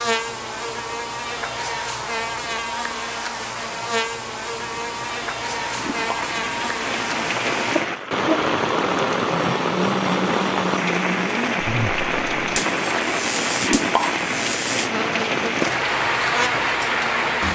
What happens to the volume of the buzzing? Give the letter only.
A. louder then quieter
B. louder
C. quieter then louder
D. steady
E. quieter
D.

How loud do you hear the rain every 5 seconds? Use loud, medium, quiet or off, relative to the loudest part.
quiet, loud, loud, loud.